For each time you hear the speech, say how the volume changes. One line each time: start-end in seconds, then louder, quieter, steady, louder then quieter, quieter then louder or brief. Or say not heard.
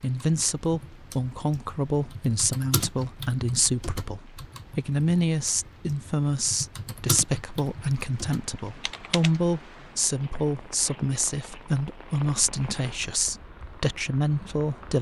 0.0-14.9 steady.